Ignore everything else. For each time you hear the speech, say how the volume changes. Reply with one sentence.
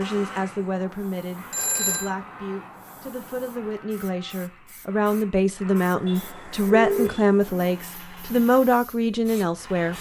You can hear the speech from 0.0 to 9.9 s, getting louder.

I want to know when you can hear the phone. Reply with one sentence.
You can hear the phone from 1.5 to 2.1 s and from 6.0 to 7.2 s.